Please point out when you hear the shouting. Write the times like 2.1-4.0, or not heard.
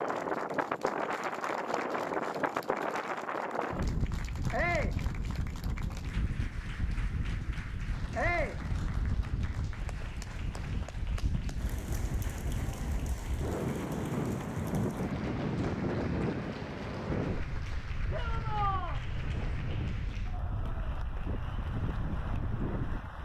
4.5-5.0, 8.2-8.6, 18.1-19.0.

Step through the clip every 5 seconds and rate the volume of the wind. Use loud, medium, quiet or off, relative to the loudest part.
loud, medium, loud, loud, medium.